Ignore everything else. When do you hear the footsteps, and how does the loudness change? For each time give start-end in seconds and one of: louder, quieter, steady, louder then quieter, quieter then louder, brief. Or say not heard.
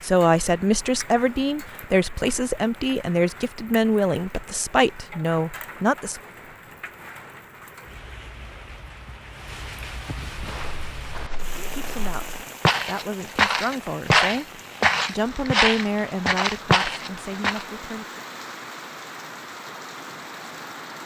10.3-17.6 louder.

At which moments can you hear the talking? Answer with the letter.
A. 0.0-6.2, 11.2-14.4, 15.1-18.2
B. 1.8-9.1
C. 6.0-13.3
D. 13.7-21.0
A.